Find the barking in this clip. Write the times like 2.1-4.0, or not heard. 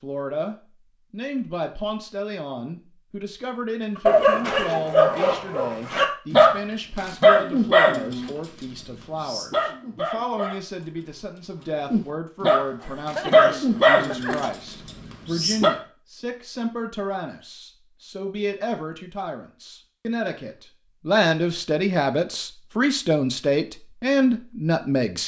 4.0-10.8, 11.6-15.8.